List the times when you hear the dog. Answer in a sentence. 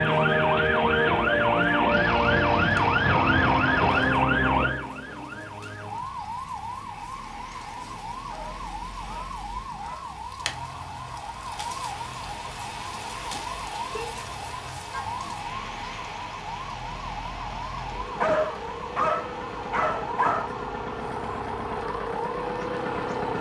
The dog can be heard from 8.2 to 10.1 s and from 18.2 to 20.5 s.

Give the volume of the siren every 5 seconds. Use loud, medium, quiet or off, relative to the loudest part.
loud, quiet, quiet, quiet, quiet.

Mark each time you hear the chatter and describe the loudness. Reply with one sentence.
The chatter can't be heard in this clip.